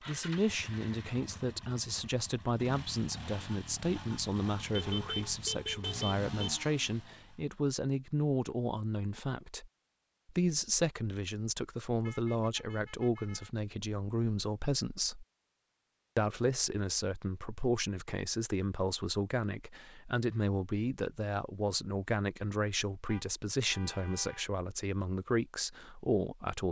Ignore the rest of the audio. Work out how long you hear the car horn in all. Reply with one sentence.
You can hear the car horn for 5 seconds altogether.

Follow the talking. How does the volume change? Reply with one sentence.
The volume of the talking stays about the same.